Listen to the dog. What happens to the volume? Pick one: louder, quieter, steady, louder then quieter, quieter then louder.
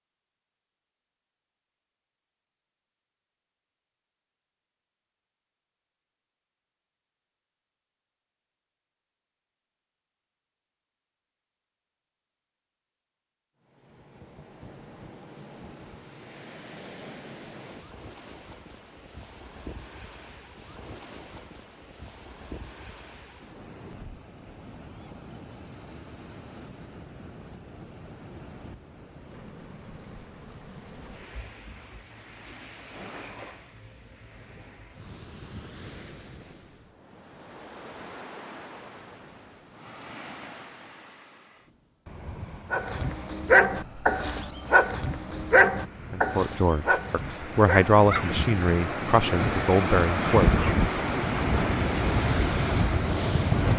quieter.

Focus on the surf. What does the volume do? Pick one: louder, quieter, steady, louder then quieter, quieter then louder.
louder.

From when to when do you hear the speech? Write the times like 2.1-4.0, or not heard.
46.1-50.6.